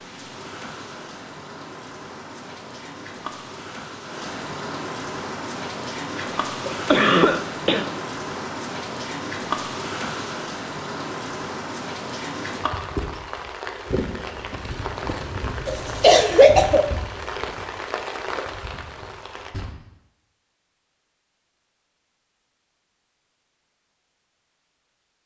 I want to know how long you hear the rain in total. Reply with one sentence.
The rain can be heard for 20 seconds in total.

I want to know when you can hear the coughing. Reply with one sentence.
The coughing can be heard from 6.7 to 7.8 s and from 15.7 to 16.9 s.